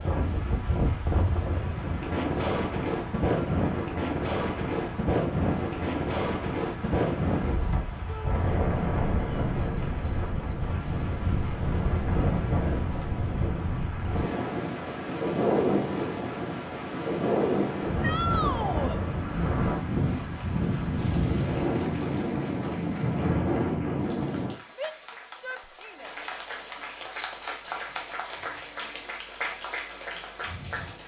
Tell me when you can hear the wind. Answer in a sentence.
The wind can be heard from 0.0 to 24.6 s.